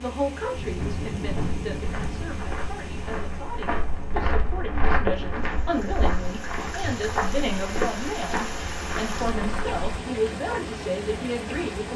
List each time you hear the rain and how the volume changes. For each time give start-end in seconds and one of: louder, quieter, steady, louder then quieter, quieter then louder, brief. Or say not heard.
0.0-11.9 quieter then louder.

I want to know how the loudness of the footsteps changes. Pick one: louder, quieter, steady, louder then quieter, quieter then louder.
louder then quieter.